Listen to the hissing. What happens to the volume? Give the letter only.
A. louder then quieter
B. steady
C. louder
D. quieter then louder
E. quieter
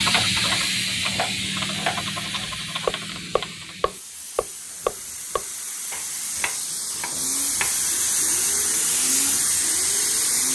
D.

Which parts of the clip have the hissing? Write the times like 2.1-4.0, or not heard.
0.0-10.4.